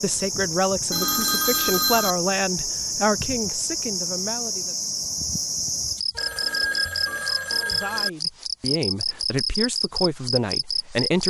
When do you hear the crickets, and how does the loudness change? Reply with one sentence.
The crickets can be heard from 0.0 to 11.2 s, at a steady volume.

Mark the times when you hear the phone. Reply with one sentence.
The phone can be heard from 0.9 to 2.1 s and from 6.2 to 8.1 s.